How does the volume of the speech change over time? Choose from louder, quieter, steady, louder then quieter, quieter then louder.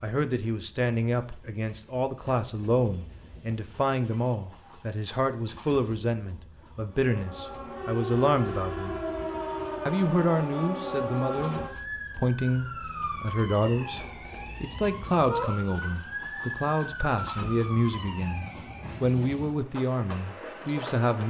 steady.